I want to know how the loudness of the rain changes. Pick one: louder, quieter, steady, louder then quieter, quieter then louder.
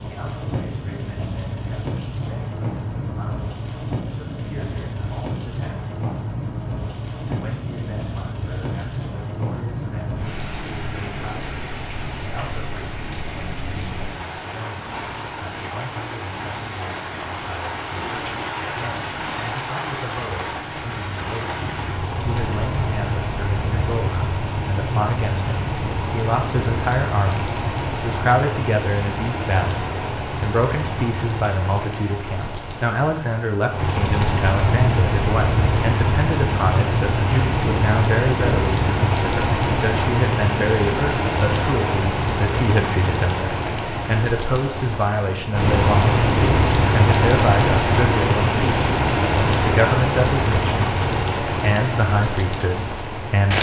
louder.